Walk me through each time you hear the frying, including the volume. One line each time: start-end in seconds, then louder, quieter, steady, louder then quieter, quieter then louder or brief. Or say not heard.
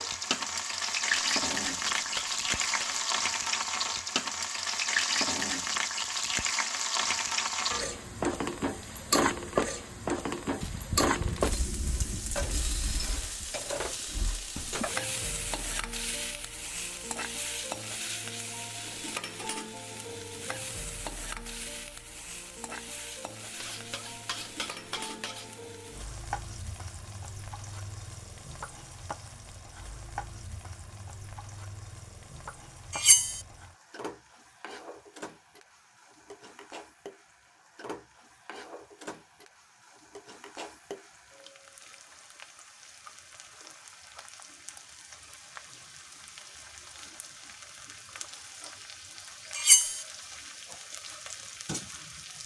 0.0-52.4 quieter.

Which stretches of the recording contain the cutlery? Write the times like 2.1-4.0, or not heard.
1.3-3.0, 10.6-13.2, 23.6-25.5, 32.9-33.4, 49.5-50.0.